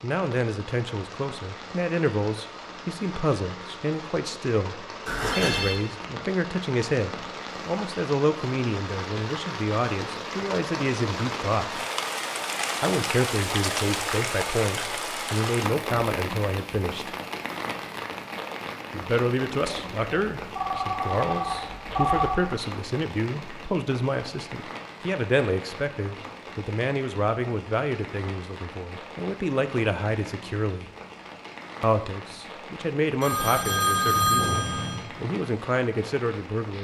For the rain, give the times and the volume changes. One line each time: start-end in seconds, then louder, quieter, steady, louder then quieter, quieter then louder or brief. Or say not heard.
0.0-36.8 louder then quieter.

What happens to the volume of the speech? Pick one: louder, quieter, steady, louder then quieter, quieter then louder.
steady.